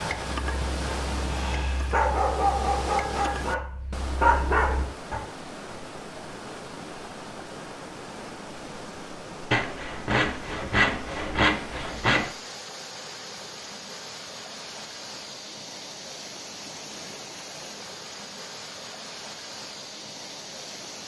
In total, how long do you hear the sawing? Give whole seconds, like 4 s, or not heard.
3 s.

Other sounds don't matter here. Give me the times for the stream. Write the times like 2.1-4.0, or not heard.
0.0-21.0.